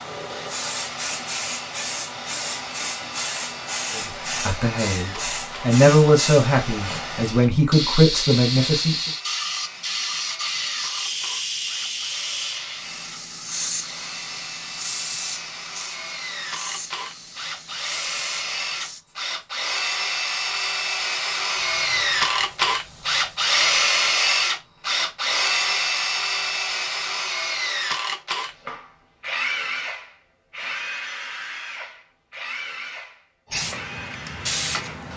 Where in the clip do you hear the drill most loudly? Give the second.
24 s.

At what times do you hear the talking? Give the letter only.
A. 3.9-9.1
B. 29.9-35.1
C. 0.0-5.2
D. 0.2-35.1
A.